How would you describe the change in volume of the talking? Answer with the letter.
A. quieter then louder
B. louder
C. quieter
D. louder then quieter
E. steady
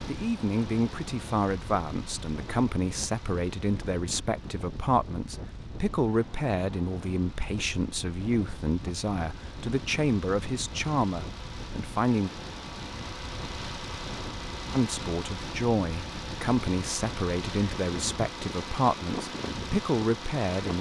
E.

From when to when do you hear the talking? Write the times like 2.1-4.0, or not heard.
0.1-12.3, 14.7-20.7.